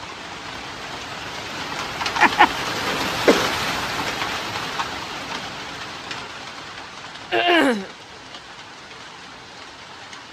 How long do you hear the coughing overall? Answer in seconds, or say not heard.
2 s.